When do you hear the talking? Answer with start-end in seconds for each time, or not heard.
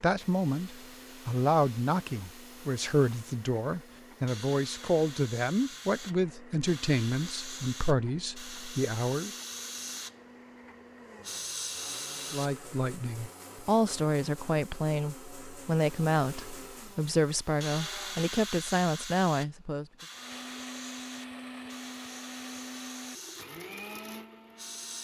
0.0-9.3, 12.3-19.9.